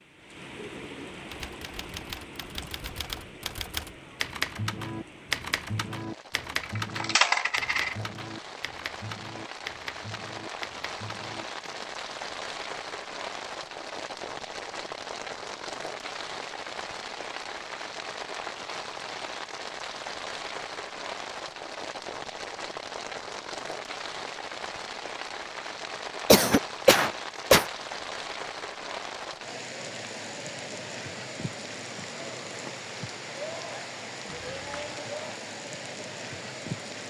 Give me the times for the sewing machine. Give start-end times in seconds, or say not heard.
not heard.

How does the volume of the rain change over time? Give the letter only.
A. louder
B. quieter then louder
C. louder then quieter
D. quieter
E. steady
A.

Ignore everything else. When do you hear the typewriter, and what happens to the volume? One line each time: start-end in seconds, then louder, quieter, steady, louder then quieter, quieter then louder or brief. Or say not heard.
1.3-12.1 louder then quieter.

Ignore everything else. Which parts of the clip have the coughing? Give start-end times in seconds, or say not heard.
26.2-27.6.